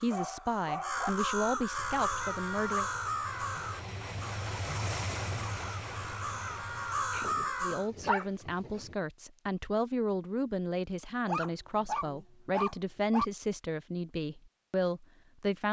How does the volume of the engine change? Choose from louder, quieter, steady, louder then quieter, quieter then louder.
louder then quieter.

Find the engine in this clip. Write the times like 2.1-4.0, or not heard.
1.8-7.5.